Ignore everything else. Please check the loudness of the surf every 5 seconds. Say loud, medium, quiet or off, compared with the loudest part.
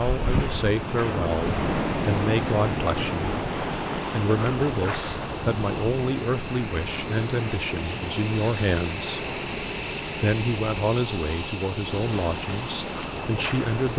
loud, medium, medium.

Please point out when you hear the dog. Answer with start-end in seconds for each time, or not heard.
not heard.